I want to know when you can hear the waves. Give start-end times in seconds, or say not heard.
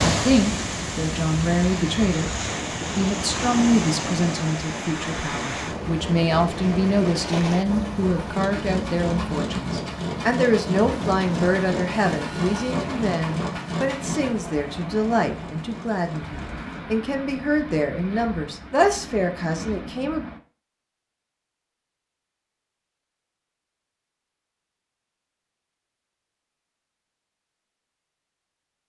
0.0-20.4.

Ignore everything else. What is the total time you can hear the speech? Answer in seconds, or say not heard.
20 s.